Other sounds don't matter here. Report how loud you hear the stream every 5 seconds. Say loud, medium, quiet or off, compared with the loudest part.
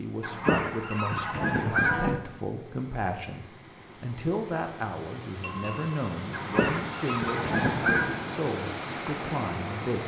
quiet, loud.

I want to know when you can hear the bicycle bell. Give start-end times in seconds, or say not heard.
0.9-1.5, 5.4-6.0.